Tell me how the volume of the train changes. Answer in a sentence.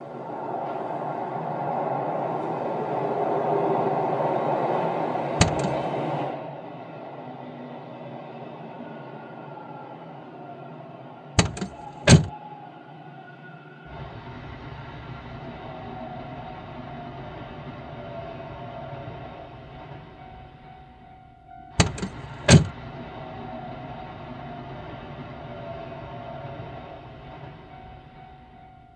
The volume of the train goes down.